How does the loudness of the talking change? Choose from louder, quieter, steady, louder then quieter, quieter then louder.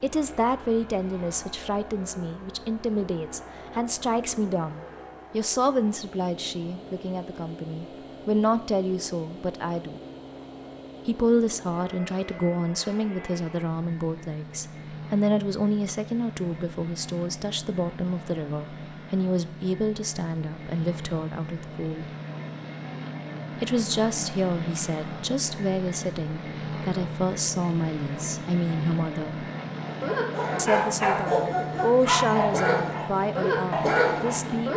steady.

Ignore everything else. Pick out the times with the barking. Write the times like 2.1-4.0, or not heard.
29.9-34.7.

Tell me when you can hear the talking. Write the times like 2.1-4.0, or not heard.
0.0-10.0, 11.1-22.1, 23.6-29.4, 30.6-34.7.